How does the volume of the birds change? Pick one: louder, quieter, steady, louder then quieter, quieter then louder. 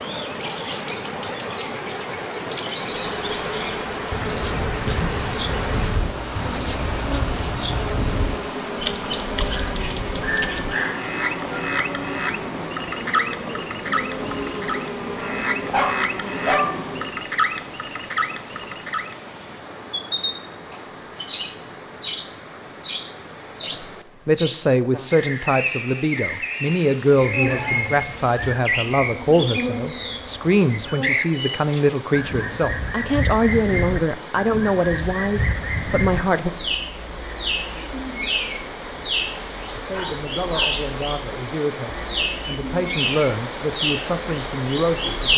steady.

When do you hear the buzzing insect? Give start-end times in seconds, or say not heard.
2.9-17.2, 27.2-31.3.